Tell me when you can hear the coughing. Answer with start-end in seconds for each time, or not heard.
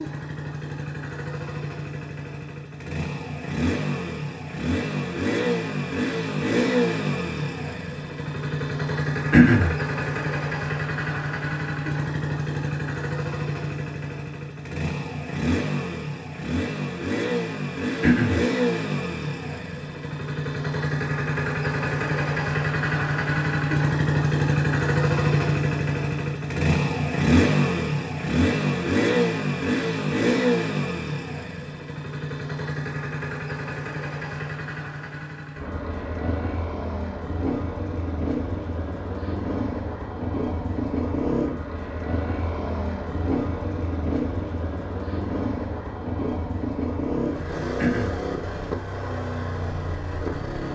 9.3-9.8, 18.0-18.4, 47.8-48.2.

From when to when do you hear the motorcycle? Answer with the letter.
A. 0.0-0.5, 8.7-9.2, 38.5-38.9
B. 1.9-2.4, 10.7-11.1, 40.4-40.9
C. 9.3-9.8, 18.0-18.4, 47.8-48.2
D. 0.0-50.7
D.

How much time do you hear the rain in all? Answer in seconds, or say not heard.
not heard.